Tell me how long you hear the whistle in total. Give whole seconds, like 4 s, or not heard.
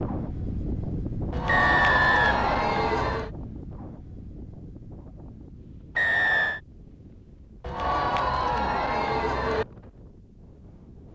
2 s.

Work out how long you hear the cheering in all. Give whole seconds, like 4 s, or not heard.
4 s.